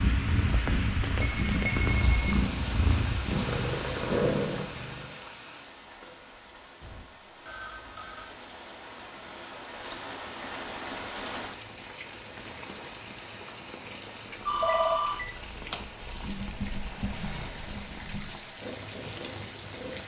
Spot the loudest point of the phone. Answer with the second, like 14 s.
15 s.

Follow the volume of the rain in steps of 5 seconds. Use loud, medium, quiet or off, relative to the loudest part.
loud, medium, loud, loud.